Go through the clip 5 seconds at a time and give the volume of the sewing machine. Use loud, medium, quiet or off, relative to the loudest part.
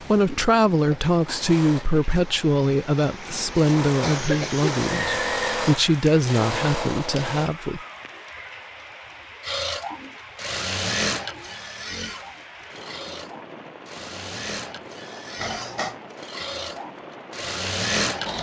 medium, loud, loud, loud.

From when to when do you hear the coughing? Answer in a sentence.
You can hear the coughing from 4.0 to 4.8 s and from 15.4 to 15.9 s.